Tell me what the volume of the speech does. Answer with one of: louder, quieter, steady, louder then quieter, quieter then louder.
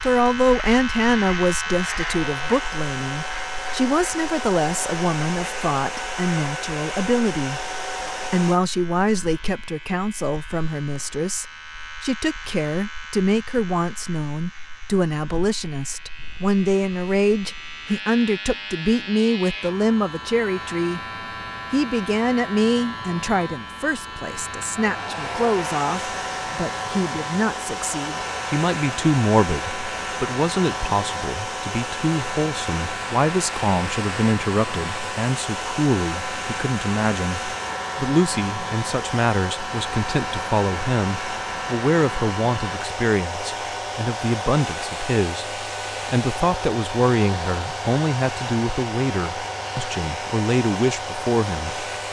steady.